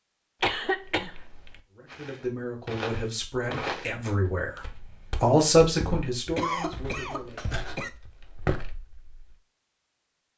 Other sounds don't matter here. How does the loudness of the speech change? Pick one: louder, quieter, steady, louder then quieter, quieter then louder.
louder then quieter.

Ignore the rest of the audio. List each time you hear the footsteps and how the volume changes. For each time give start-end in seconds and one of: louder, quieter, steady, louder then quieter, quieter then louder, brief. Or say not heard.
1.9-9.3 quieter then louder.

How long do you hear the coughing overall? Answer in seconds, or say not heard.
3 s.